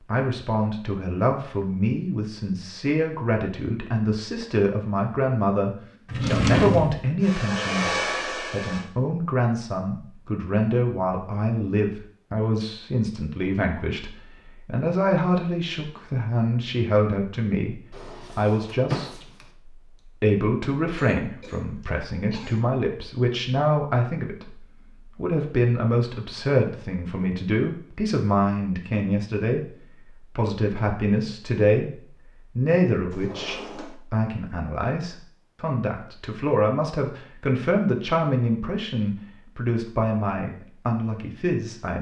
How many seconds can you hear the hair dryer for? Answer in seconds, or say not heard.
2 s.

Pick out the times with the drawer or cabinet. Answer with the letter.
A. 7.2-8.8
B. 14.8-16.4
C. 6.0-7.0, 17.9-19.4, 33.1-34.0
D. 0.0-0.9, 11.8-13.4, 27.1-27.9
C.